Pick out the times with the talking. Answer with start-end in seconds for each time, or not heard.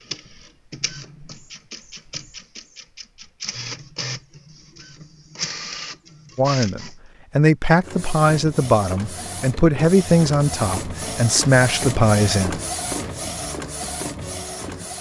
6.3-12.6.